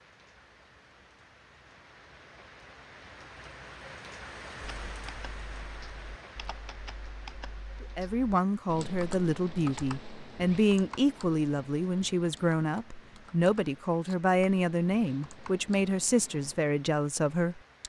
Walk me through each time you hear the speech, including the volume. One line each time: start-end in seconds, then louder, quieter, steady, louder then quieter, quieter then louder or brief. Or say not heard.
7.8-17.8 steady.